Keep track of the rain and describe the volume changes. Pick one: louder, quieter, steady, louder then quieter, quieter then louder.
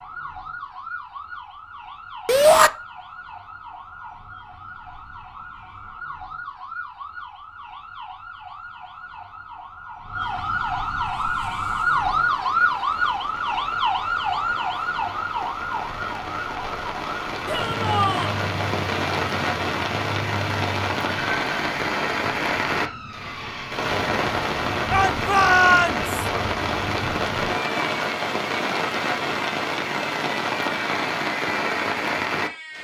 louder.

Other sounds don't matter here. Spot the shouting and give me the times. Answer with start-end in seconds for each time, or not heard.
2.2-2.7, 17.4-18.4, 24.9-26.1.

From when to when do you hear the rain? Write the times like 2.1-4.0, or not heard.
11.2-32.7.